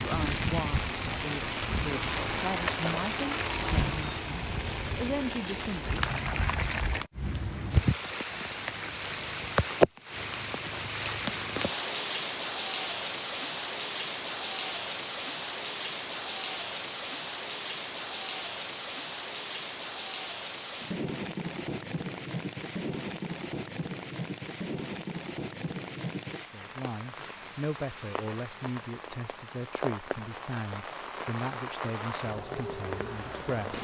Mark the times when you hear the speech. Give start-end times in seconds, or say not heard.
0.0-6.0, 26.4-33.7.